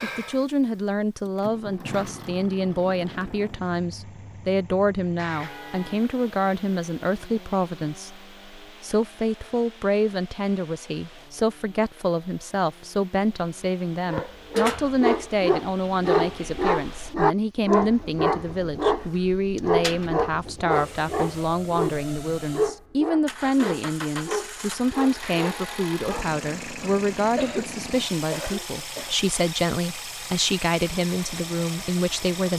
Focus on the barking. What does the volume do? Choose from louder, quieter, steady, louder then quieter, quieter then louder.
quieter.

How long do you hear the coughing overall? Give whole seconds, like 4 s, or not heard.
2 s.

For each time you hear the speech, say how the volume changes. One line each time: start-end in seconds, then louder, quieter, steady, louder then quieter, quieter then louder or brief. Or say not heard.
0.0-32.5 steady.